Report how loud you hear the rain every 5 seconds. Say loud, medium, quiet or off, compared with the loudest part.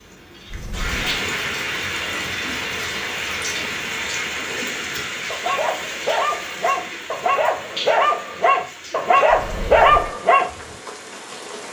loud, medium, medium.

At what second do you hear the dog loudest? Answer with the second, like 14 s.
10 s.